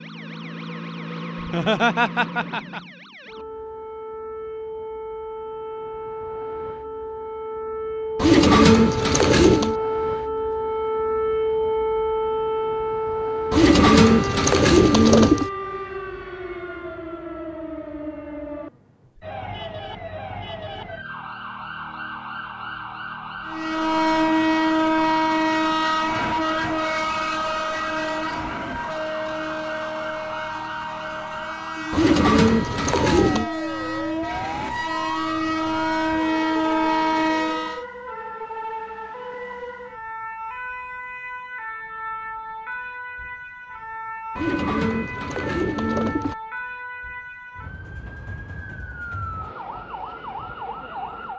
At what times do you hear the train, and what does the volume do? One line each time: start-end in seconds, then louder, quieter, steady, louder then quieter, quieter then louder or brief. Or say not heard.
23.4-37.9 quieter then louder.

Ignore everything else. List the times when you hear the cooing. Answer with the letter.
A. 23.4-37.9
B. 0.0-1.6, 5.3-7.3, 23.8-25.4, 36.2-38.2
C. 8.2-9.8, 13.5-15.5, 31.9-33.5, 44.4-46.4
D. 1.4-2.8
C.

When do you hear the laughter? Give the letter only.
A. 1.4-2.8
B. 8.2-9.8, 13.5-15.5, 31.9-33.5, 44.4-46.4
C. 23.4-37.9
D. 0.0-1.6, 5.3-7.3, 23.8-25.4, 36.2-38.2
A.